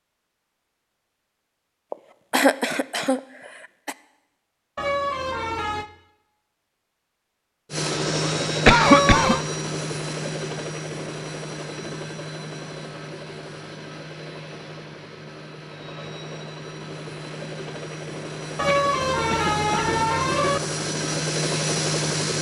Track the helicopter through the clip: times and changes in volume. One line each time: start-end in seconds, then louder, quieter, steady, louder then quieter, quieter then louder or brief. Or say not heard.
7.7-22.3 quieter then louder.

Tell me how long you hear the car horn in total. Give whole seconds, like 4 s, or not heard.
4 s.